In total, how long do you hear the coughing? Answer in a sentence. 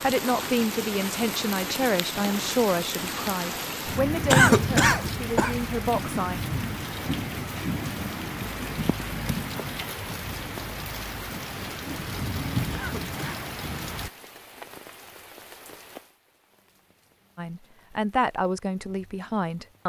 You can hear the coughing for 2 seconds altogether.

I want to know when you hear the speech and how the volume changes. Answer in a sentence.
The speech can be heard from 0.0 to 6.3 s, at a steady volume; and briefly from 17.4 to 19.8 s.